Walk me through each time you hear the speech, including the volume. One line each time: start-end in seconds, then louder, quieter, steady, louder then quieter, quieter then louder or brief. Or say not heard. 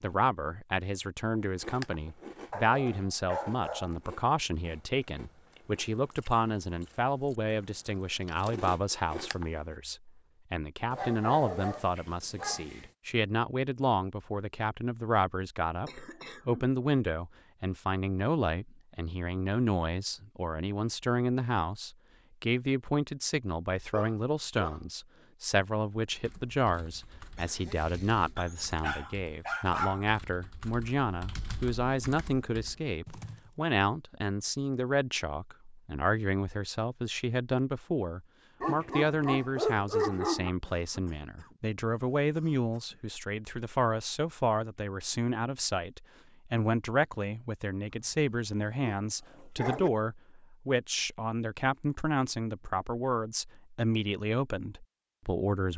0.0-55.7 steady.